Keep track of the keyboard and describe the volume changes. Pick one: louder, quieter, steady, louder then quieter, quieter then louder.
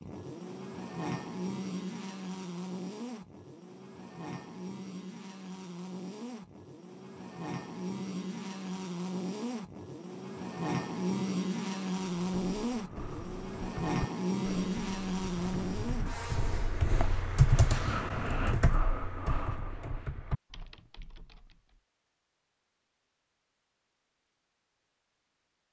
louder then quieter.